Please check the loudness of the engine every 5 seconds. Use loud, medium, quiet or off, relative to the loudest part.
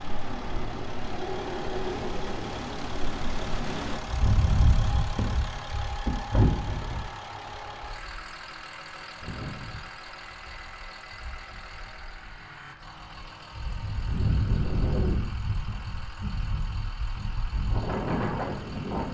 loud, loud, medium, medium.